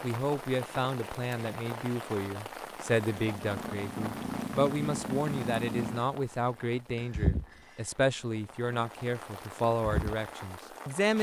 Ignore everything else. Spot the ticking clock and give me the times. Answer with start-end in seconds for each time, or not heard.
not heard.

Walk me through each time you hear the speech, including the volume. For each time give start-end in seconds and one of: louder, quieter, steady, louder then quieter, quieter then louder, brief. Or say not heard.
0.0-11.1 steady.